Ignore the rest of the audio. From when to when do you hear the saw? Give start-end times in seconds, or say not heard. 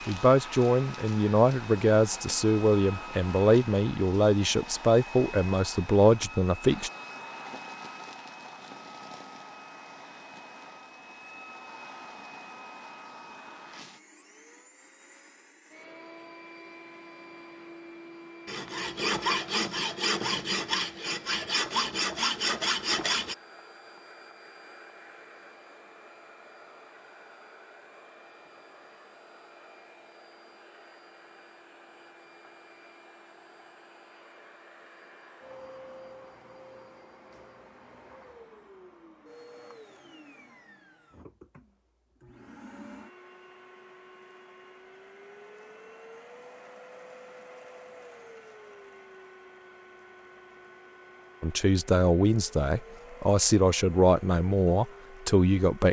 18.4-23.4.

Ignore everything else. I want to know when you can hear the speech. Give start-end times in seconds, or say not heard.
0.1-6.9, 51.4-55.8.